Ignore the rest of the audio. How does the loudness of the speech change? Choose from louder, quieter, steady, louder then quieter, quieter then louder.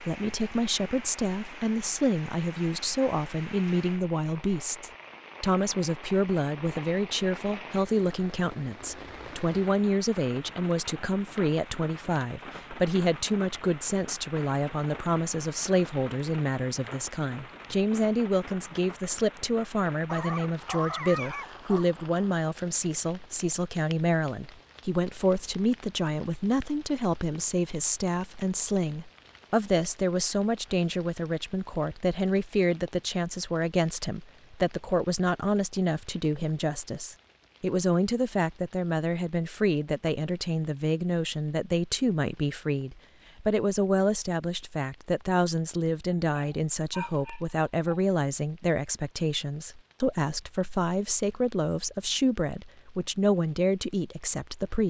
steady.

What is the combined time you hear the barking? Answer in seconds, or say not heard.
4 s.